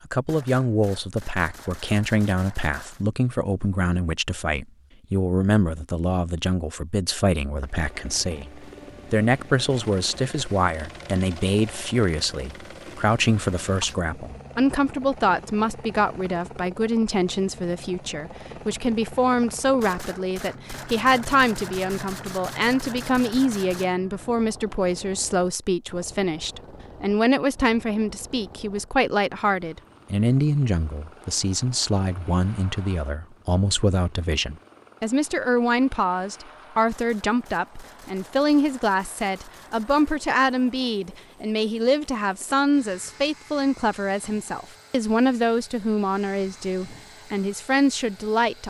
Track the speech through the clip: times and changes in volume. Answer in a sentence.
The speech can be heard from 0.1 to 48.6 s, at a steady volume.